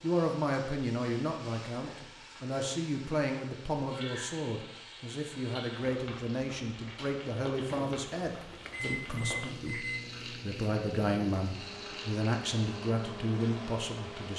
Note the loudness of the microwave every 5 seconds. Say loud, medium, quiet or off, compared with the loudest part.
off, loud, medium.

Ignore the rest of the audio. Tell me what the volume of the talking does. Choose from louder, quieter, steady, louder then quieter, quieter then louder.
steady.